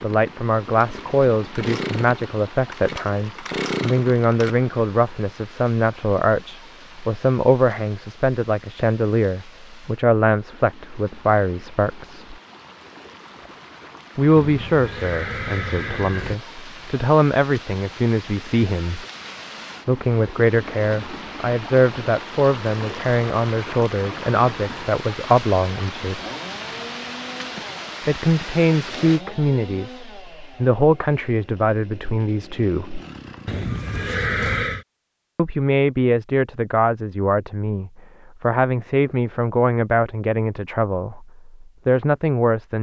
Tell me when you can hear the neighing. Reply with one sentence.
You can hear the neighing from 14.3 to 16.4 s and from 33.5 to 34.9 s.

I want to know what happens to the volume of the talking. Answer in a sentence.
The loudness of the talking stays about the same.